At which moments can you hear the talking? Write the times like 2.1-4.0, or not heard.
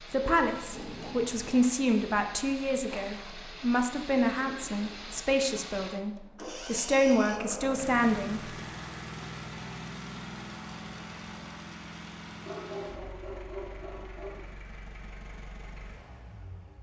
0.0-8.5.